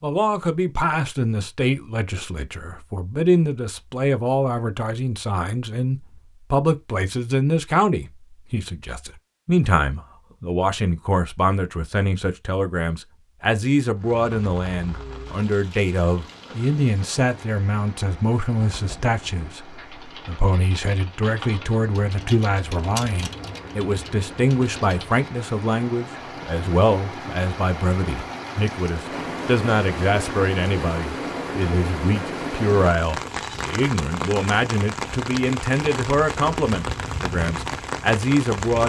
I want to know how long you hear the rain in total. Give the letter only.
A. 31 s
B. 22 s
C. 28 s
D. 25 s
D.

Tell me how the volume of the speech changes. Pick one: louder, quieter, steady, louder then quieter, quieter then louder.
steady.